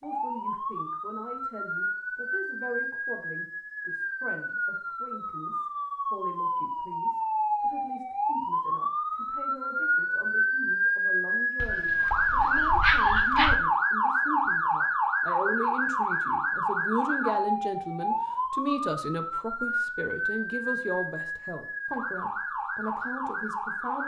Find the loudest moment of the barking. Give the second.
13 s.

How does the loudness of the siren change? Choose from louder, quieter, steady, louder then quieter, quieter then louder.
louder then quieter.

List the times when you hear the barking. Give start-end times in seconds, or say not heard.
11.6-13.6.